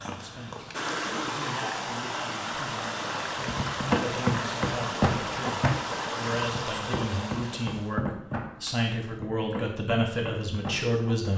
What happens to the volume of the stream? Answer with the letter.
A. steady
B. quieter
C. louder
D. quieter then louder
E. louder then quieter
A.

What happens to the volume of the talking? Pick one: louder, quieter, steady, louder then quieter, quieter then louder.
louder.